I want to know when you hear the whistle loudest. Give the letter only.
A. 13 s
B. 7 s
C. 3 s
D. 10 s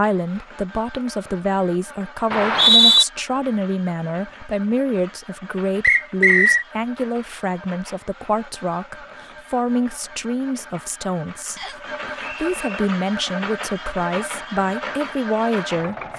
C.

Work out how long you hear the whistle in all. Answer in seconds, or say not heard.
3 s.